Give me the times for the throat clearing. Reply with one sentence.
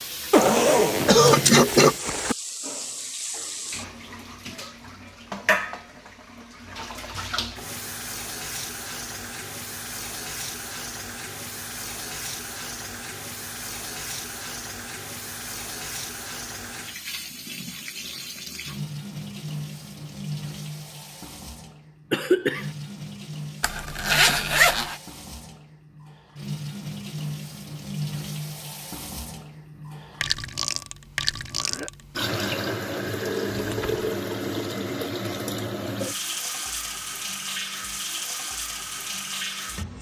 You can hear the throat clearing from 0.5 to 1.9 s, from 22.1 to 22.7 s and from 31.6 to 32.5 s.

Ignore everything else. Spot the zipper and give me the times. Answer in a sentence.
You can hear the zipper from 0.3 to 2.4 s, from 23.6 to 24.9 s and from 33.5 to 34.0 s.